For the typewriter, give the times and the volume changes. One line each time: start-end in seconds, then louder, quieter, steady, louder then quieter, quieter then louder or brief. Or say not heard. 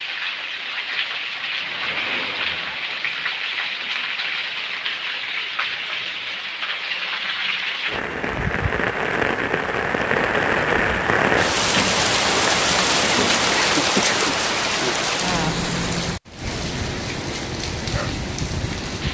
not heard.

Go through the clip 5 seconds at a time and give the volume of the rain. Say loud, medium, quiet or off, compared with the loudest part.
medium, medium, loud, medium.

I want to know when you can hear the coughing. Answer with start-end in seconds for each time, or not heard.
13.5-14.9.